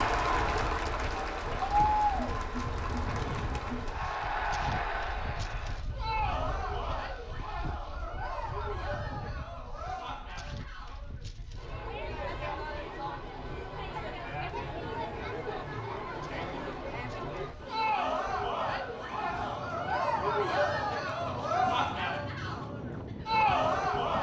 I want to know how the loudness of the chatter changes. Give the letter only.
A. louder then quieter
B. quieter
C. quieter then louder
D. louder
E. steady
C.